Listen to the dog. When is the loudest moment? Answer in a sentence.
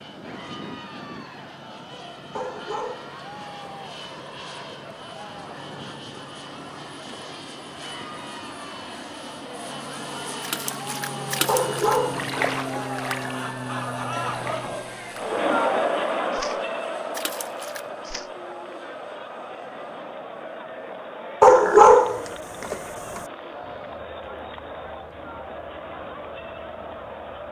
The loudest moment of the dog is at 22 seconds.